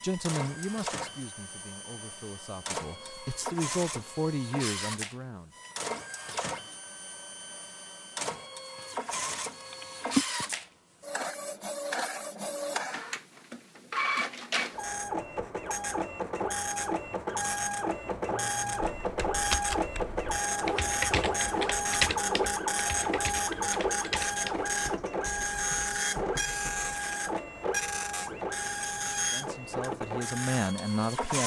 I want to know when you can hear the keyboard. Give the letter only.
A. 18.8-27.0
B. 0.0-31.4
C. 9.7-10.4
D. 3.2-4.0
A.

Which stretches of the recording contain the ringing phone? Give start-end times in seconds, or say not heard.
9.7-10.4.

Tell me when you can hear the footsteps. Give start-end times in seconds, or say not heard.
not heard.